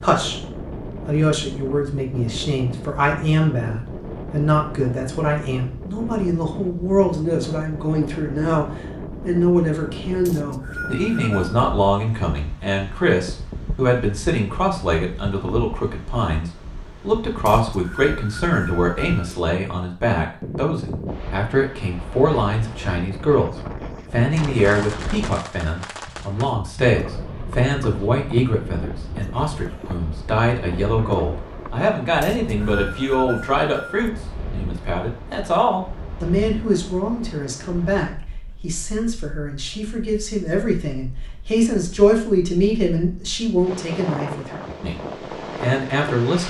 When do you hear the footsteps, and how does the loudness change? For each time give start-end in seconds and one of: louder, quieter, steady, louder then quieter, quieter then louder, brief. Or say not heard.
not heard.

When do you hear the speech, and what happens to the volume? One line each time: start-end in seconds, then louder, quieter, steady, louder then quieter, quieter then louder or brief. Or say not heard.
0.0-46.4 steady.